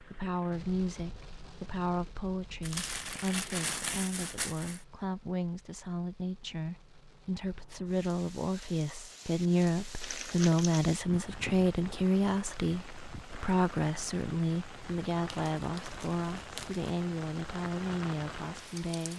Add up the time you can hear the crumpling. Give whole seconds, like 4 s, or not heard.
5 s.